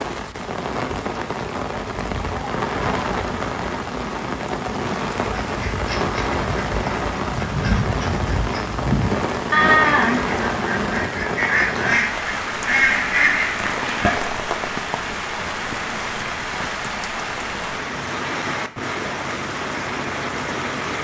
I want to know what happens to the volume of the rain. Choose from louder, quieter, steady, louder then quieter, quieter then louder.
steady.